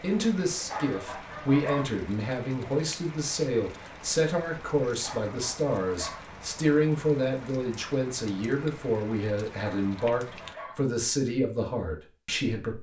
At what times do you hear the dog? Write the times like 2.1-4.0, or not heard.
0.7-1.9, 5.0-6.2, 9.6-10.8.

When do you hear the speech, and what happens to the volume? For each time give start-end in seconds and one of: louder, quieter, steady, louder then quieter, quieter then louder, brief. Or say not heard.
0.0-12.7 steady.